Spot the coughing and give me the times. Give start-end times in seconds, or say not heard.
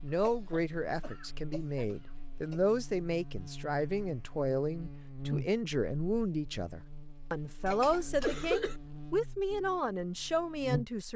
0.1-2.6, 7.7-8.8.